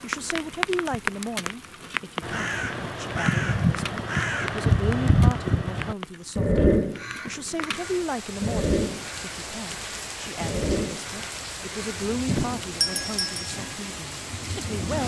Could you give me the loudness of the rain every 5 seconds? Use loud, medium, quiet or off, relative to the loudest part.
loud, medium, loud.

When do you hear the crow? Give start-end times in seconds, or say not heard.
2.2-12.5.